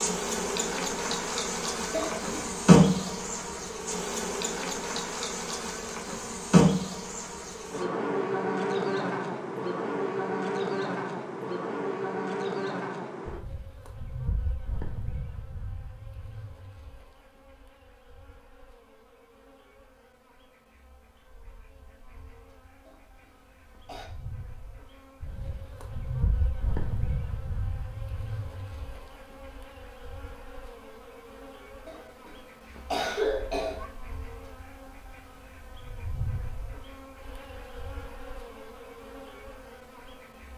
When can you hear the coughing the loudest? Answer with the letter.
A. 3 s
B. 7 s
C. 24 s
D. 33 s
D.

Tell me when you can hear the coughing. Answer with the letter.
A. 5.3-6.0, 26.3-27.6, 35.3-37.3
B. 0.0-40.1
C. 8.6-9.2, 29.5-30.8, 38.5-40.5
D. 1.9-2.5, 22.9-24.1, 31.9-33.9
D.